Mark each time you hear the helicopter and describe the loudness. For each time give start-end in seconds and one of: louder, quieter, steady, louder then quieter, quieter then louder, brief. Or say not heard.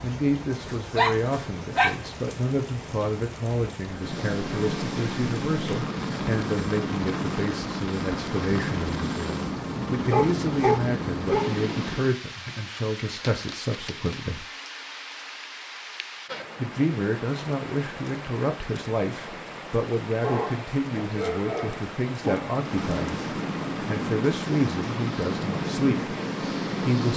3.9-12.2 steady
22.5-27.1 steady.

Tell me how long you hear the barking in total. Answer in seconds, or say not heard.
6 s.